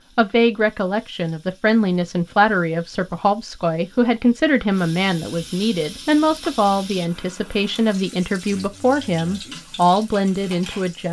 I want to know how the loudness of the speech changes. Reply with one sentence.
The volume of the speech stays about the same.